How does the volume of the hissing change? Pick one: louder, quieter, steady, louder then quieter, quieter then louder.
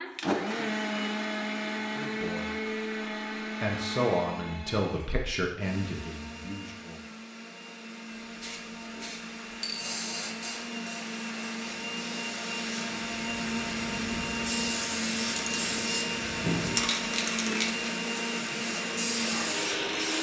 quieter then louder.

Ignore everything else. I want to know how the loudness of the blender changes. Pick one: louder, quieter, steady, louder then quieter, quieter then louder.
quieter then louder.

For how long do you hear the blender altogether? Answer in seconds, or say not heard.
20 s.